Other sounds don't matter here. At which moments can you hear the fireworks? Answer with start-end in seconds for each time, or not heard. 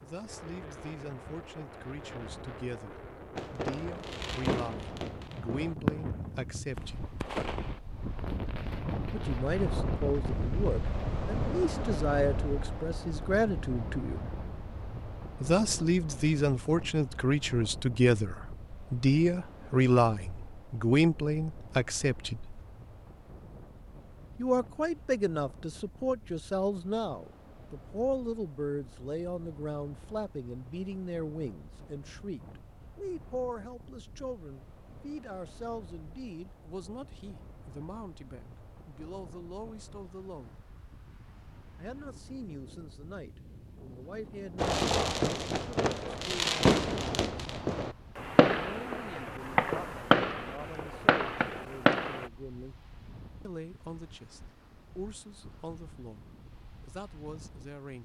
3.4-10.8, 44.5-52.3.